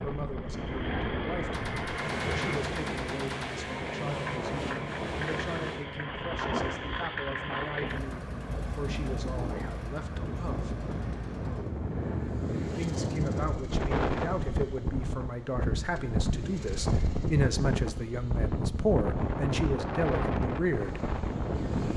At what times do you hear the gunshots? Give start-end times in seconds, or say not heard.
1.5-3.5.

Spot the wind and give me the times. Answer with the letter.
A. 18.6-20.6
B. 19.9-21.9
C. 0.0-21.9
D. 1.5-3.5
C.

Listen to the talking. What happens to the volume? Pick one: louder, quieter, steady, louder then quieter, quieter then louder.
louder.